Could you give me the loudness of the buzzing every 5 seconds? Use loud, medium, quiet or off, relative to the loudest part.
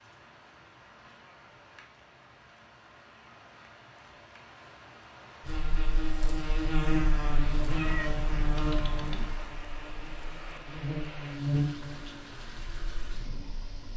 off, loud, loud.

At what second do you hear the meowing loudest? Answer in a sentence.
The loudest moment of the meowing is at 8 seconds.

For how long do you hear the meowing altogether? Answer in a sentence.
You can hear the meowing for 2 seconds altogether.